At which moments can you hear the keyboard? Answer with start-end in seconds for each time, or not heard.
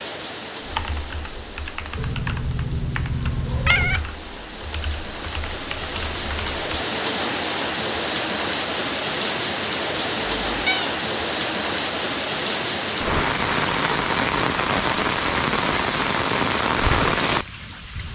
0.6-6.7.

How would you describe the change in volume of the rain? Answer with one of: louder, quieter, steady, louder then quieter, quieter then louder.
louder.